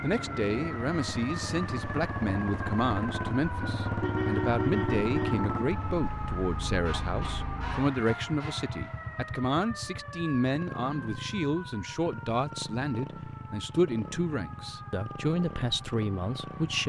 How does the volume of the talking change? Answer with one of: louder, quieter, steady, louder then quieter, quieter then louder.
steady.